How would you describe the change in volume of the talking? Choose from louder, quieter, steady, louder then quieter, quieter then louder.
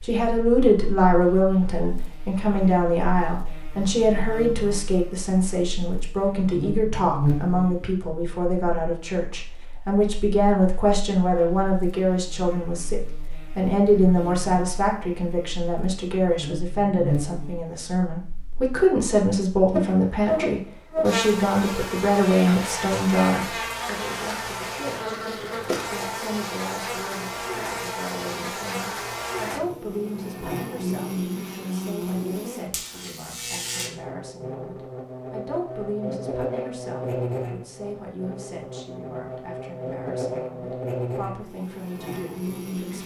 quieter.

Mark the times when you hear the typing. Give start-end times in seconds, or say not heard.
not heard.